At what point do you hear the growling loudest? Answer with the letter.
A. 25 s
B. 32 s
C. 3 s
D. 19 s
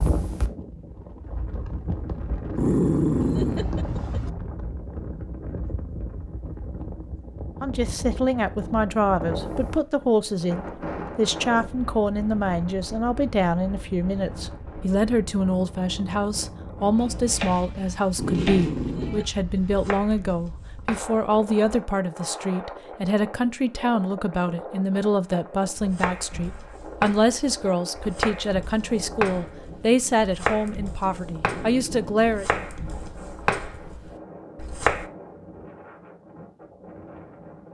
C.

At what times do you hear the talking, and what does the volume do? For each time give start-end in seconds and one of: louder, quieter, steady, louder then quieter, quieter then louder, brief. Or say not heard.
7.6-32.6 steady.